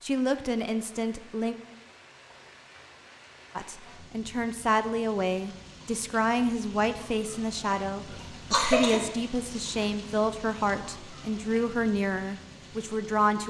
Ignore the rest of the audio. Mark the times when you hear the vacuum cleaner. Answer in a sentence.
You can't hear the vacuum cleaner here.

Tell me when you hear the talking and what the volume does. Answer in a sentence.
You can hear the talking briefly from 0.0 to 1.6 s; and from 3.5 to 13.4 s, at a steady volume.